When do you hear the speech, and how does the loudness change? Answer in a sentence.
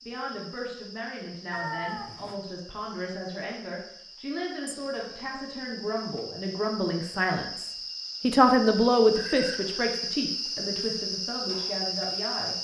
You can hear the speech from 0.1 to 12.5 s, getting louder then quieter.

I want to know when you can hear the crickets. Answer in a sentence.
The crickets can be heard from 0.0 to 12.5 s.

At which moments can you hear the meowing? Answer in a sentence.
You can hear the meowing from 1.5 to 2.4 s, from 4.7 to 5.8 s and from 9.2 to 9.9 s.